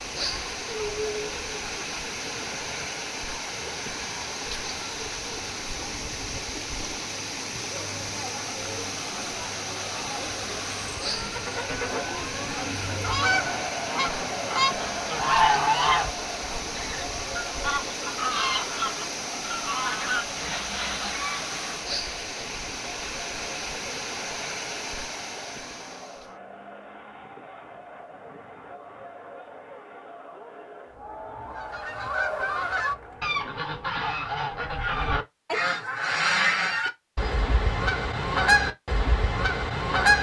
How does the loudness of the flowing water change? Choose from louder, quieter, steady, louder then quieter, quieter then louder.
steady.